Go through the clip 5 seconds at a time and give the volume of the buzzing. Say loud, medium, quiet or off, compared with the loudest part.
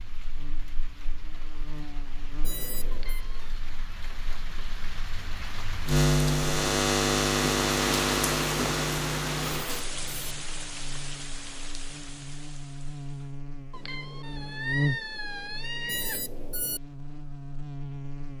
quiet, loud, medium, quiet.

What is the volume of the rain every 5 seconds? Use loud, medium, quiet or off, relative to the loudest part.
quiet, loud, medium, off.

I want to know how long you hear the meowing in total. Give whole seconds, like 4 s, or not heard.
3 s.